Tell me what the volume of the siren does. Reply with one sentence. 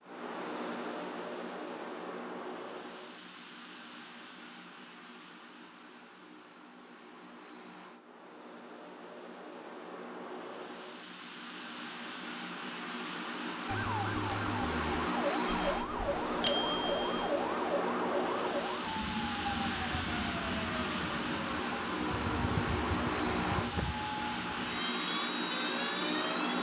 The loudness of the siren stays about the same.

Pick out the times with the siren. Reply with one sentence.
You can hear the siren from 13.7 to 26.5 s.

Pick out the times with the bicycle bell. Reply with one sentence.
The bicycle bell can be heard from 15.6 to 17.2 s.